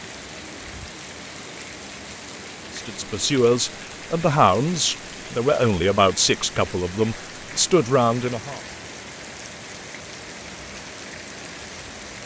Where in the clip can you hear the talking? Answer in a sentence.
The talking can be heard from 2.8 to 8.6 s.